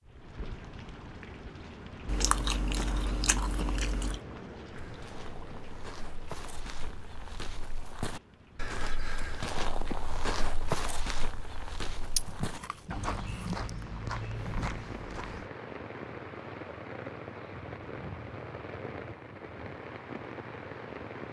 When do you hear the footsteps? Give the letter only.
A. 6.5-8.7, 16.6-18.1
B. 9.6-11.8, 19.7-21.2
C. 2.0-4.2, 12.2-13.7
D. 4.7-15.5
D.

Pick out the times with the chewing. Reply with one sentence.
You can hear the chewing from 2.0 to 4.2 s and from 12.2 to 13.7 s.